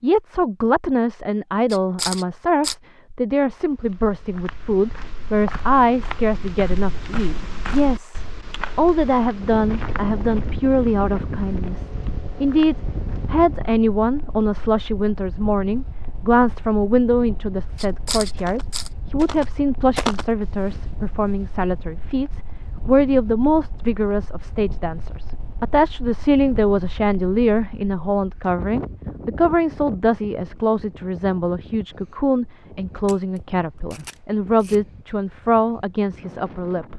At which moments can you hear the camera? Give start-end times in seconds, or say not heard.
1.7-2.8, 17.8-18.9, 33.0-34.8.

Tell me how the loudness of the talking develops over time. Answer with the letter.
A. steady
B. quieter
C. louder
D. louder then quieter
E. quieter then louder
A.